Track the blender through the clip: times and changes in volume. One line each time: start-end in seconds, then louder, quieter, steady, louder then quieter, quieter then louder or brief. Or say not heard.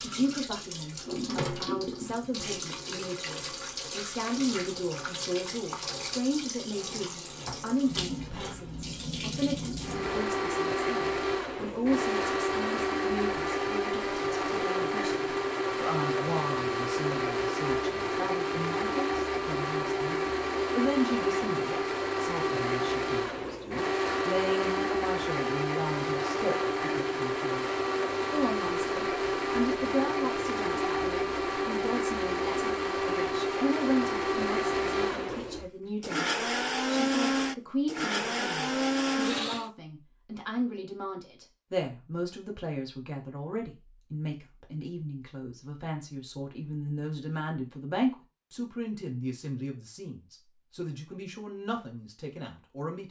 9.8-39.7 steady.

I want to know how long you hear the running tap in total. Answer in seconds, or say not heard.
10 s.